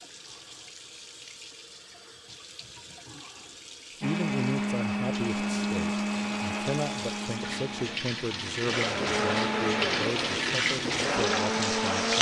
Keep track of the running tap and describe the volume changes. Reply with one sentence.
The loudness of the running tap goes up.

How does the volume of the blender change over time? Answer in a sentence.
The volume of the blender goes down, then up.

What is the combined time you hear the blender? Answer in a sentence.
The blender can be heard for 8 seconds in total.